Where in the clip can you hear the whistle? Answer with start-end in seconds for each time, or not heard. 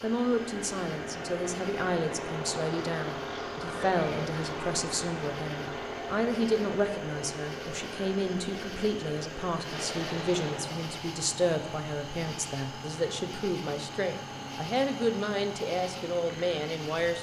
not heard.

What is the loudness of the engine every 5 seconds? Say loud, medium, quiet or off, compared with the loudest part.
loud, loud, medium, medium.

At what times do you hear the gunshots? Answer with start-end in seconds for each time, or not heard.
9.7-11.1.